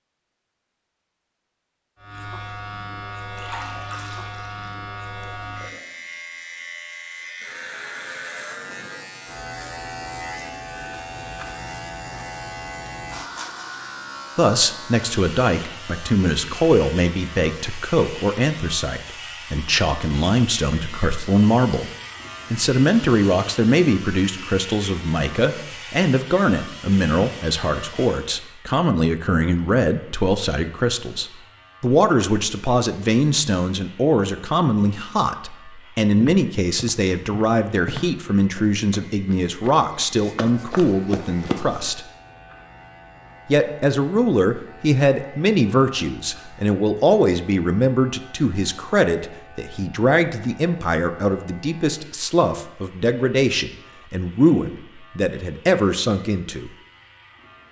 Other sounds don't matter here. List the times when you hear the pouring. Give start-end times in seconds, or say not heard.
3.4-4.7.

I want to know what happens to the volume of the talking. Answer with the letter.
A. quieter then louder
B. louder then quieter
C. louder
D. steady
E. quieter
D.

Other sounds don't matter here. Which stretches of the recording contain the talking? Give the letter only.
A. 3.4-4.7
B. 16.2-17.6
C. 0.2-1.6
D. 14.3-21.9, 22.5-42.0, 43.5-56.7
D.